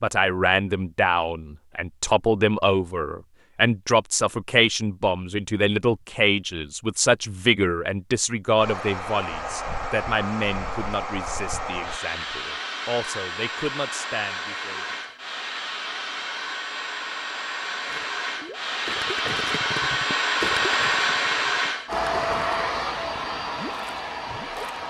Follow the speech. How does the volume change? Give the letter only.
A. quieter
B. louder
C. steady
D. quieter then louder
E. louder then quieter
A.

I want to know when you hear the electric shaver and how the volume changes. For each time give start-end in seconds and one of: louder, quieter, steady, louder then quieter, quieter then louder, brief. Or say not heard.
not heard.